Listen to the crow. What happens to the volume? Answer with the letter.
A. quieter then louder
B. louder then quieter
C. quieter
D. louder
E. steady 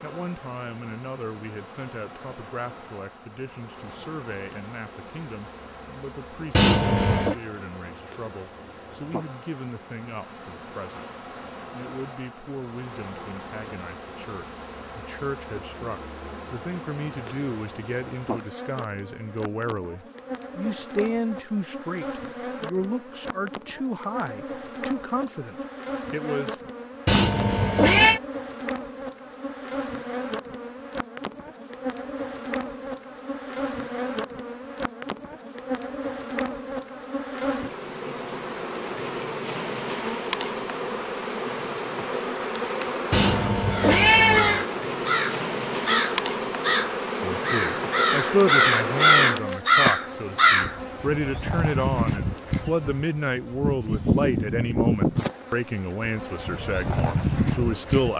D.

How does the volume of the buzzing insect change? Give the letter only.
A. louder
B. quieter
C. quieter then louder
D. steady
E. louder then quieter
A.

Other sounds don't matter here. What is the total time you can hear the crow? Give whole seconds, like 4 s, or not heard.
7 s.